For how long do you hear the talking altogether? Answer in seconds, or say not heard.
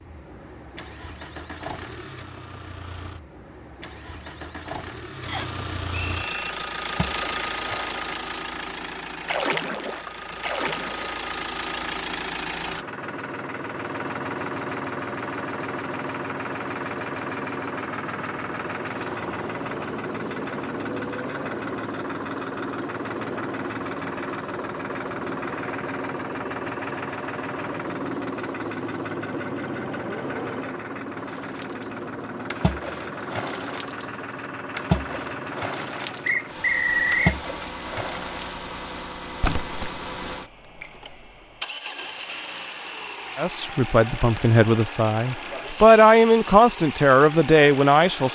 5 s.